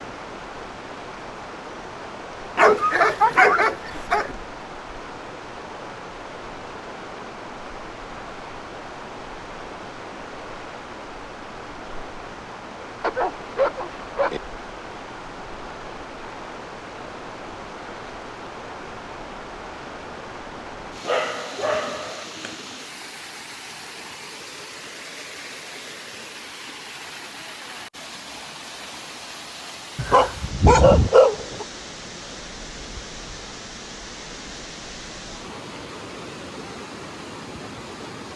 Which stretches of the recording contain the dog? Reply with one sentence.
The dog can be heard from 2.5 to 4.3 s, from 13.0 to 14.4 s, from 21.1 to 22.6 s and from 29.9 to 31.6 s.